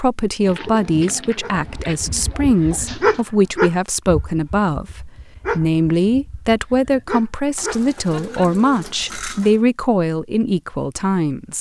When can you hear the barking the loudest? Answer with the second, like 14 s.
3 s.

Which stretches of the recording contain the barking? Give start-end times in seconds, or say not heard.
1.4-8.5.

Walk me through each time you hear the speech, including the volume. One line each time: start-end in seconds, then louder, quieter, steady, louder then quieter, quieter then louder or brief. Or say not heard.
0.0-11.5 steady.